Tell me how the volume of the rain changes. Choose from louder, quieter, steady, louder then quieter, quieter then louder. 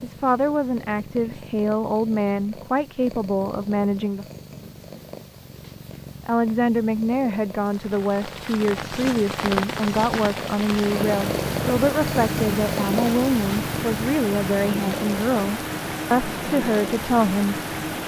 steady.